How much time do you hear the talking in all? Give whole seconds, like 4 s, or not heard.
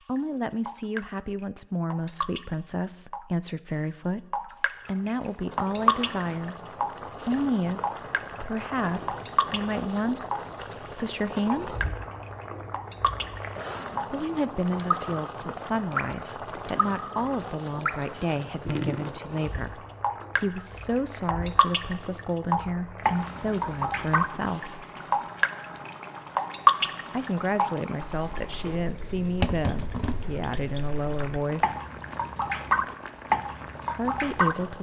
27 s.